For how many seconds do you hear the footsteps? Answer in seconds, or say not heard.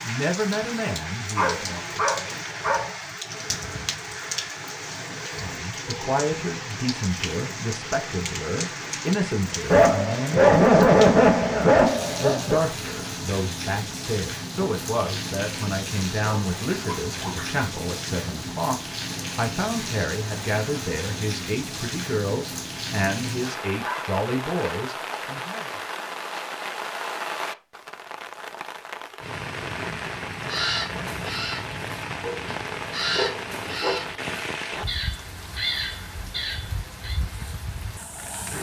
not heard.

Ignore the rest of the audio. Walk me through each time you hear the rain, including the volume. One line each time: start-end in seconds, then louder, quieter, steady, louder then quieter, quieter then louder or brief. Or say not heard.
0.0-38.5 steady.